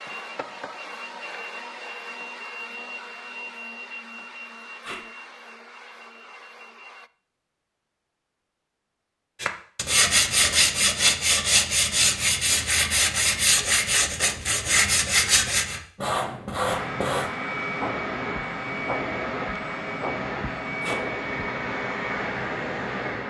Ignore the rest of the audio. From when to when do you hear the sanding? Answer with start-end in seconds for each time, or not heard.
9.4-17.3.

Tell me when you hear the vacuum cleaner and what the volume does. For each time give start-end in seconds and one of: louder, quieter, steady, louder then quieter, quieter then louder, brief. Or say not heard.
0.0-7.1 quieter
16.6-23.2 steady.